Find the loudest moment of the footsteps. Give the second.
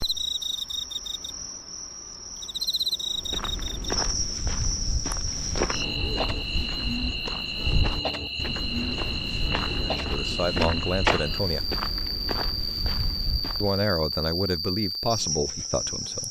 11 s.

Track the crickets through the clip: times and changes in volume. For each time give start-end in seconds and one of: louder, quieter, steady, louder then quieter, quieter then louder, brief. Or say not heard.
0.0-16.2 steady.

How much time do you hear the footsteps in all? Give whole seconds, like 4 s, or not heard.
11 s.